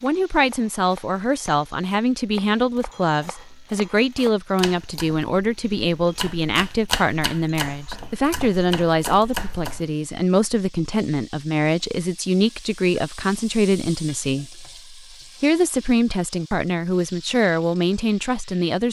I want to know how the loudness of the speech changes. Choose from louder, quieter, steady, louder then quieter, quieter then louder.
steady.